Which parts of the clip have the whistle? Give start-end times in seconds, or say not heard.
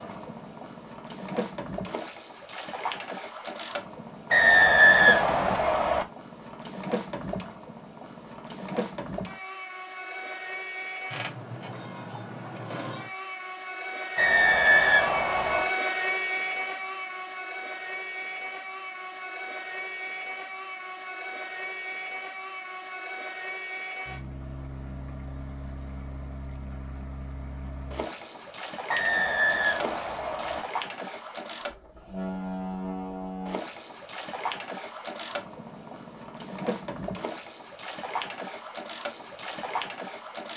4.3-6.0, 14.2-15.7, 28.9-30.6.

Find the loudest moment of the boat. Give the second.
16 s.